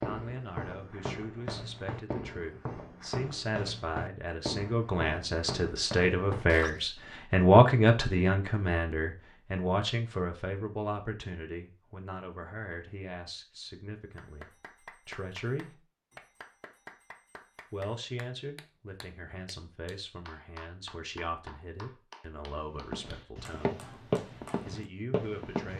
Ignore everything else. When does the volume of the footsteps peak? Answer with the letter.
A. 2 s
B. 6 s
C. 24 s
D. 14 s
C.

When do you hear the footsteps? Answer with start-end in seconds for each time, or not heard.
0.0-7.0, 22.8-25.7.